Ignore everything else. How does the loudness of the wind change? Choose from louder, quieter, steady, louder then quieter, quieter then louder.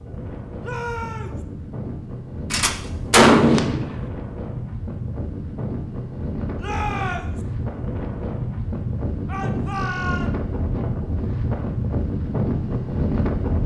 louder.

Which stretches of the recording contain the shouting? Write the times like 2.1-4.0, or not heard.
0.6-1.4, 6.5-7.4, 9.2-10.3.